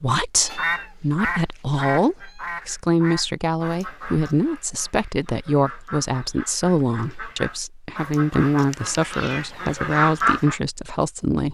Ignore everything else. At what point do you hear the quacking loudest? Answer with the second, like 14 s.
10 s.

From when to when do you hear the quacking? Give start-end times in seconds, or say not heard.
0.6-10.6.